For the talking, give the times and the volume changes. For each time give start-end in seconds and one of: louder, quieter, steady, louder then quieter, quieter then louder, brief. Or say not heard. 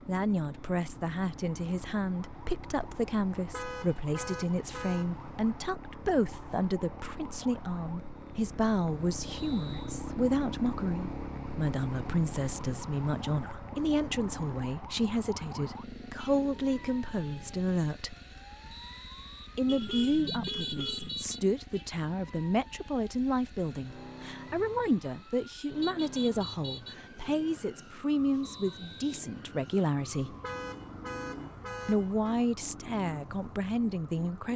0.1-18.1 steady
19.6-30.4 steady
31.9-34.5 brief.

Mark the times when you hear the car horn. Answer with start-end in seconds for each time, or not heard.
3.4-5.2, 19.6-21.2, 30.2-32.4.